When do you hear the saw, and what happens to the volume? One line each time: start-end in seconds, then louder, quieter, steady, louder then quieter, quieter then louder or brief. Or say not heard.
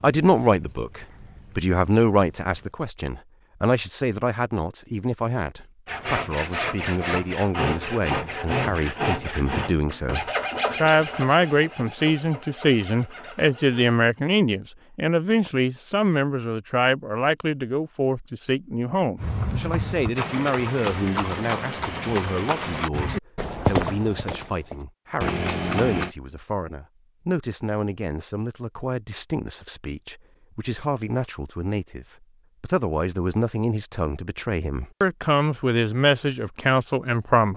5.8-13.9 quieter.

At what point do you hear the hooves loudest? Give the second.
24 s.